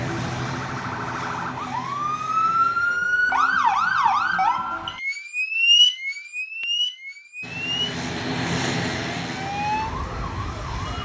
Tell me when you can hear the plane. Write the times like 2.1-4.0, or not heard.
0.0-3.0, 7.4-11.0.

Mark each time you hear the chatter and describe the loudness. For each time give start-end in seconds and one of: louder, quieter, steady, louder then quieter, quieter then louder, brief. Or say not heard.
not heard.